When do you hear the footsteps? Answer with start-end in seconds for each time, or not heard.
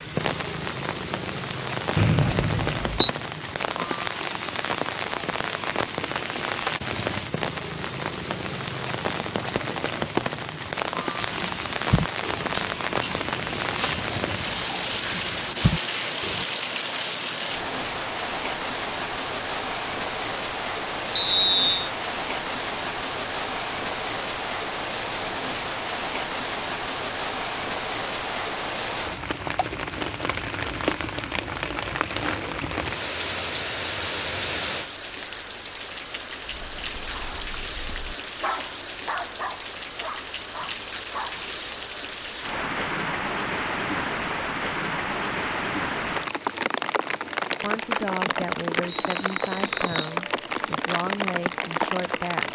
not heard.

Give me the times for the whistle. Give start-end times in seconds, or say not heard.
1.9-3.1, 21.1-21.8, 48.9-50.1.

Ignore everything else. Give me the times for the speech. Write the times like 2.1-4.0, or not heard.
47.6-52.5.